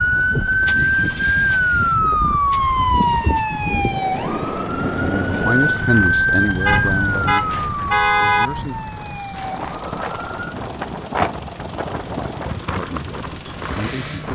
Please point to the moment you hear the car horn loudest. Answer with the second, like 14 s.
8 s.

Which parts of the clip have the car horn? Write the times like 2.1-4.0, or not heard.
6.7-8.5.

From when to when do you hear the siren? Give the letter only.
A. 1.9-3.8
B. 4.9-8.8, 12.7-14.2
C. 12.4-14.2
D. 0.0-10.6
D.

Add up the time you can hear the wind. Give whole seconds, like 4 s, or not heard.
14 s.